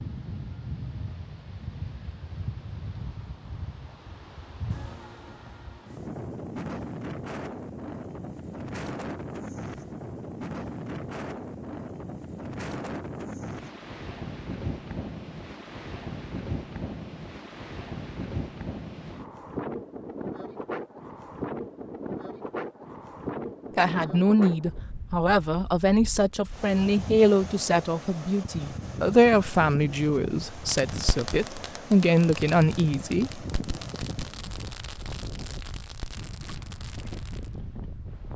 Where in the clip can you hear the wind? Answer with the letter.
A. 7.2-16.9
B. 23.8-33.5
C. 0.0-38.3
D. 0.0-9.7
C.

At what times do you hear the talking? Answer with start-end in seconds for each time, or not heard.
23.8-33.5.